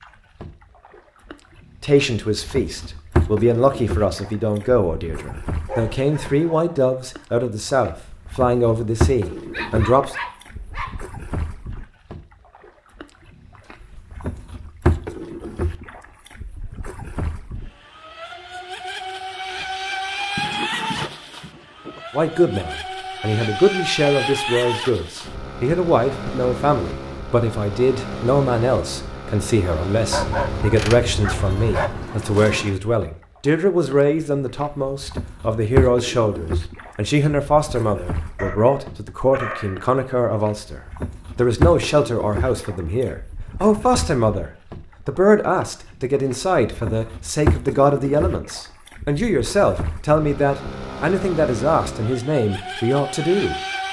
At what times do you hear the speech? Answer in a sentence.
You can hear the speech from 1.8 to 10.2 s and from 22.1 to 53.8 s.